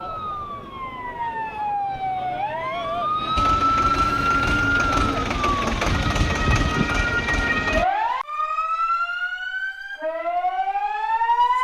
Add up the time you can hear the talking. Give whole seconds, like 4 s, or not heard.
not heard.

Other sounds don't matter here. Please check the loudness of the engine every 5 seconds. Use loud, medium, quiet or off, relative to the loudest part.
loud, loud, off.